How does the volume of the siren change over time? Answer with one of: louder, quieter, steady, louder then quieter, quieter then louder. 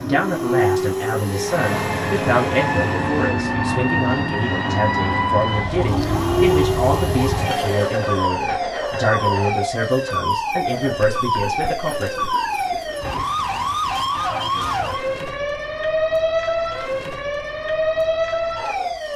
steady.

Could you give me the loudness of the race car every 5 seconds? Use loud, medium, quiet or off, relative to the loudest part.
loud, loud, off, off.